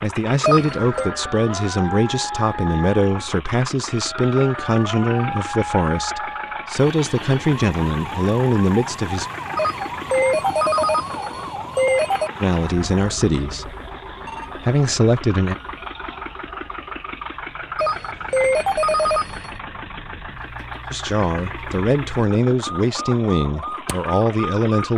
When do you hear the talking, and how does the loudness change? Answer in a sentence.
The talking can be heard from 0.0 to 9.2 s, at a steady volume; briefly from 12.4 to 13.7 s; briefly from 14.6 to 15.6 s; and from 20.9 to 24.9 s, at a steady volume.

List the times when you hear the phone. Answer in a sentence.
You can hear the phone from 0.4 to 1.1 s, from 9.6 to 12.3 s and from 17.8 to 19.5 s.